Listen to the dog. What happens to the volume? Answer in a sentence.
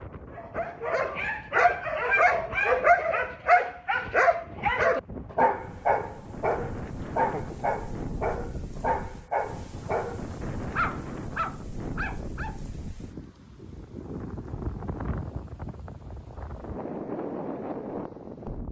The loudness of the dog goes down.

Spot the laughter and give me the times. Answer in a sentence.
You can hear the laughter from 7.0 to 7.7 s.